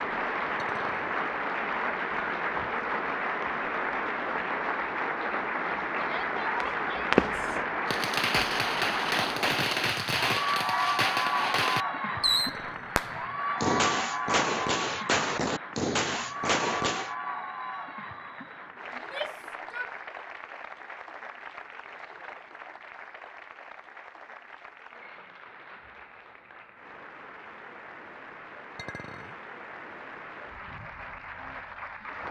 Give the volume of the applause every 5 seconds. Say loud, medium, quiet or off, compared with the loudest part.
loud, loud, loud, medium, quiet, quiet, medium.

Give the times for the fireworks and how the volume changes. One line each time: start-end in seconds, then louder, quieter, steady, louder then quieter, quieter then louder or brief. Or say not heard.
6.6-17.1 steady.